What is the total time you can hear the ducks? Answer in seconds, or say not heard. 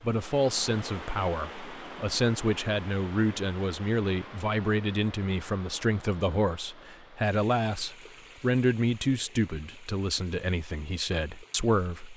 not heard.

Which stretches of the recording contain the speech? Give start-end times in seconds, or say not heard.
0.0-12.1.